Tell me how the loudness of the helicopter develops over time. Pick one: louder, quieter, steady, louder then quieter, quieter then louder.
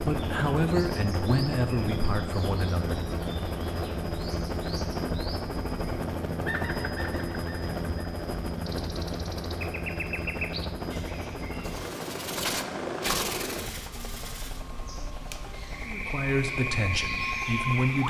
quieter.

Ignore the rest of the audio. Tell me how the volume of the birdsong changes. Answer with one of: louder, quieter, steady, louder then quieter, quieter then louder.
louder.